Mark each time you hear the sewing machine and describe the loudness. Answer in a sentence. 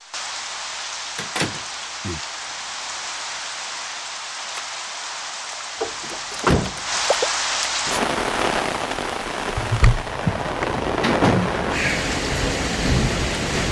You can't hear the sewing machine here.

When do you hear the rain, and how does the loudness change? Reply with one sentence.
The rain can be heard from 0.0 to 13.6 s, getting louder.